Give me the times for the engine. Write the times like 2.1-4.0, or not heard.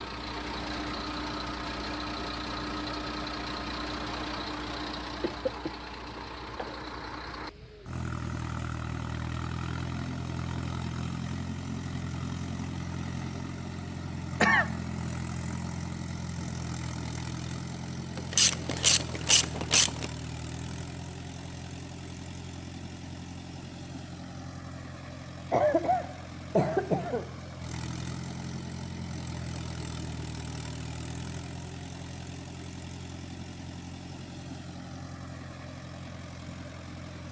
0.0-37.2.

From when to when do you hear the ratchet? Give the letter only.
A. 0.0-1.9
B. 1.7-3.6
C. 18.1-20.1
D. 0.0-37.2
C.